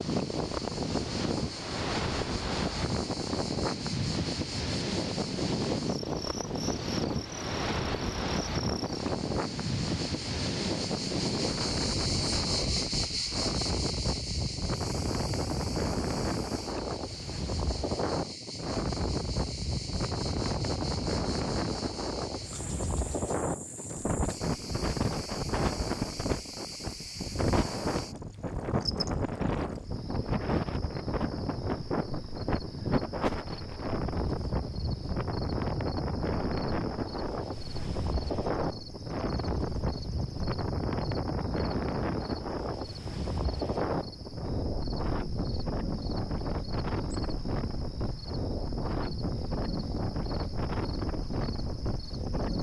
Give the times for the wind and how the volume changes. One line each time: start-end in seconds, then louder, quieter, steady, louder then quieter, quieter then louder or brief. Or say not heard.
0.0-52.5 steady.